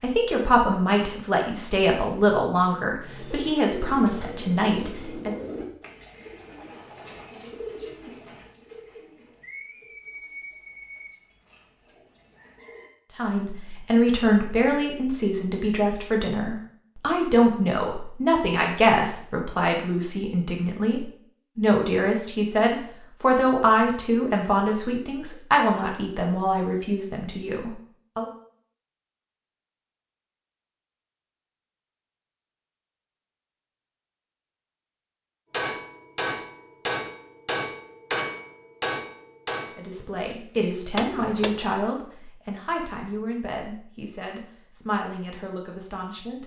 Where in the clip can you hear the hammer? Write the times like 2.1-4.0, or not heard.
35.5-41.8.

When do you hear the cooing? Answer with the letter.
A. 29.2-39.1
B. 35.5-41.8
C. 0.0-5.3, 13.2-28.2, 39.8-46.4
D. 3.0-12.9
D.